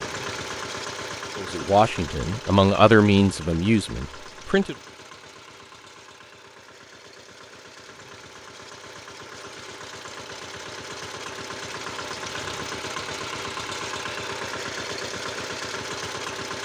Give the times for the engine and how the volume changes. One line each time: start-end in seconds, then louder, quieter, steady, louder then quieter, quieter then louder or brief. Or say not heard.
0.0-16.5 quieter then louder.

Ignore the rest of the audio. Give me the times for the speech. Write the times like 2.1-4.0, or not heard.
1.4-4.8.